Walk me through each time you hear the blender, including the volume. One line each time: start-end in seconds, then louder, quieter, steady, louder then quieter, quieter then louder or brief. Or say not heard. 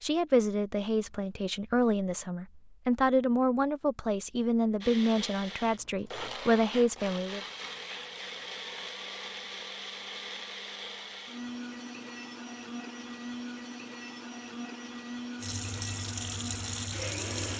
4.8-17.5 steady.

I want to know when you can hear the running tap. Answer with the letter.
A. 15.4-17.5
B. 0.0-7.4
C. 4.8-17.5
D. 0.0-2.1
A.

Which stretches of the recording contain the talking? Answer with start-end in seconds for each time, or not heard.
0.0-7.4.